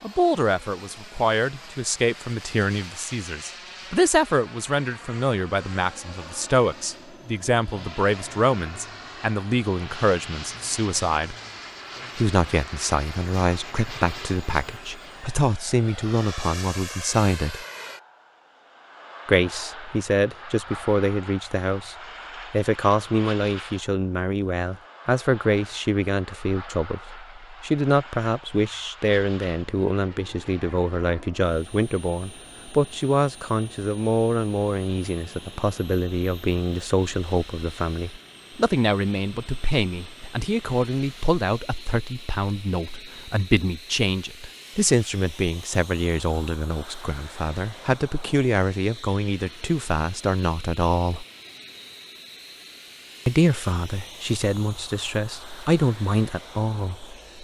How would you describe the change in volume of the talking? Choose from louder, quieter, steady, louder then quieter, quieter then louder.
steady.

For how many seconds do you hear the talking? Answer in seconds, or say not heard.
53 s.